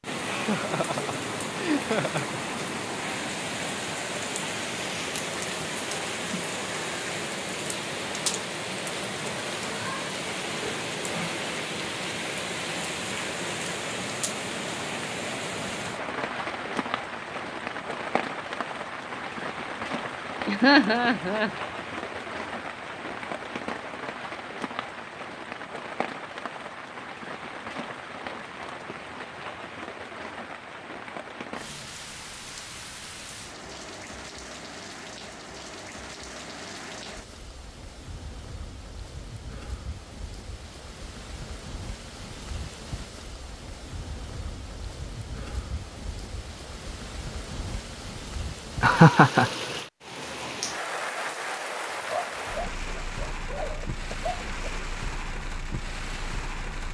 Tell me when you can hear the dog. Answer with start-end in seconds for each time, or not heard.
51.9-54.7.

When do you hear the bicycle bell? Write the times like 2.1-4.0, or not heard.
not heard.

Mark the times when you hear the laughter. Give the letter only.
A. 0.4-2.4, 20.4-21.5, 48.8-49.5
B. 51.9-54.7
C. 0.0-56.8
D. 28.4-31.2
A.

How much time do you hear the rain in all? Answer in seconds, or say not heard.
57 s.